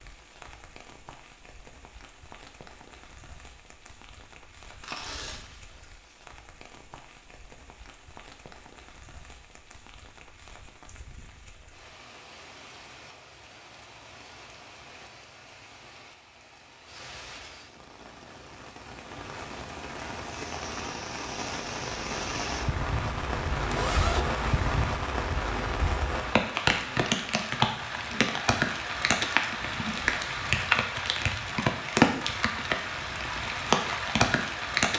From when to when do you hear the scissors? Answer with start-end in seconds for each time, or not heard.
not heard.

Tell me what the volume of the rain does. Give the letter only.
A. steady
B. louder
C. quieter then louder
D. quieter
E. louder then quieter
B.